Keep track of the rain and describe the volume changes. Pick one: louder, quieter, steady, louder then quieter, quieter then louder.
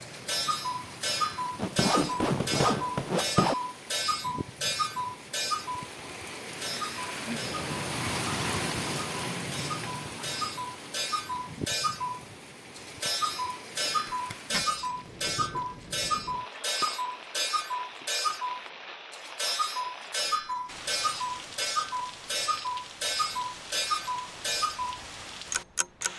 louder then quieter.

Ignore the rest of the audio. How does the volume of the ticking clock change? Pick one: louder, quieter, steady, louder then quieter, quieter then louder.
steady.